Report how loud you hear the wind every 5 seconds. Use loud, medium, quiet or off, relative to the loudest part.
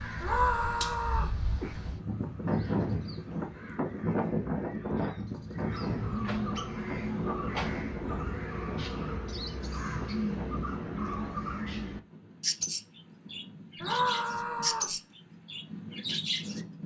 loud, loud, quiet, medium.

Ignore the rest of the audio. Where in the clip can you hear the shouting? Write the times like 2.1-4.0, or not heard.
0.2-1.4, 13.8-14.9.